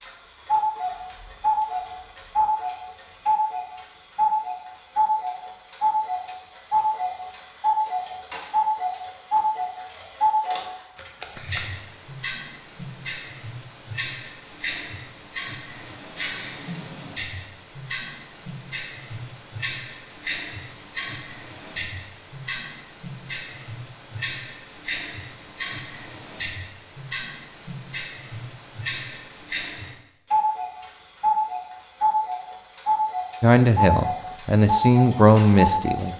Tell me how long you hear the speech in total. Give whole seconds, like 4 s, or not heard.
3 s.